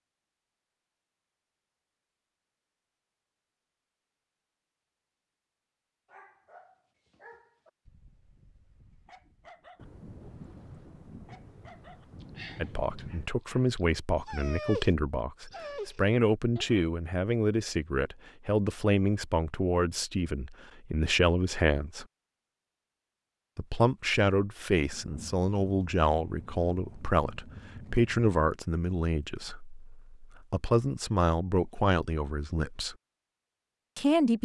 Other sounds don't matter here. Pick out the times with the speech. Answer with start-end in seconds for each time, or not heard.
12.6-22.1, 23.6-33.0, 34.0-34.4.